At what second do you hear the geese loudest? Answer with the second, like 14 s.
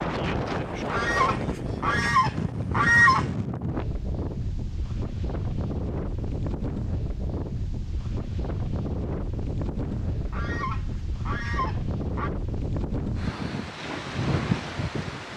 3 s.